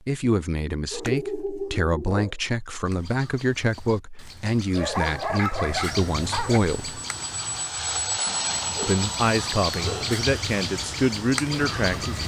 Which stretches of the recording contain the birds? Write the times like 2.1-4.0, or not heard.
2.8-12.2.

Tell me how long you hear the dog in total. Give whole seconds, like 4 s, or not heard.
5 s.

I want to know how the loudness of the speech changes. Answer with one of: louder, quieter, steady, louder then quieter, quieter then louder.
steady.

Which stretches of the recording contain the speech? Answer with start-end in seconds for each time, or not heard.
0.1-7.0, 8.8-12.2.